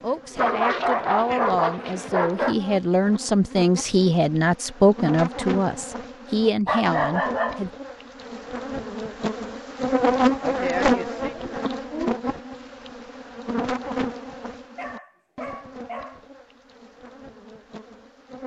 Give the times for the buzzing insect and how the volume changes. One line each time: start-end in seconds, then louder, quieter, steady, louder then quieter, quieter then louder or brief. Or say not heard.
0.0-18.4 louder then quieter.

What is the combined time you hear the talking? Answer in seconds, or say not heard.
8 s.